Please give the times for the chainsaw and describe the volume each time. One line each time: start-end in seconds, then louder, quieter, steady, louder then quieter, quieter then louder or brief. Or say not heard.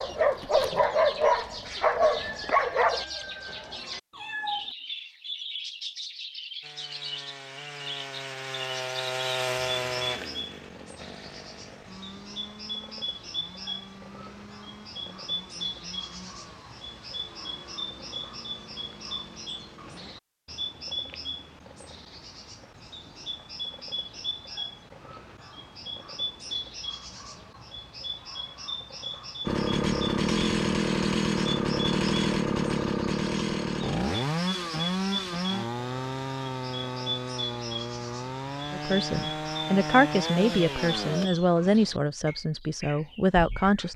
6.6-20.1 quieter
29.4-41.3 quieter.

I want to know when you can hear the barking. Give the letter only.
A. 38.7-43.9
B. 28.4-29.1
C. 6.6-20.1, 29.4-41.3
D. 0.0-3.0
D.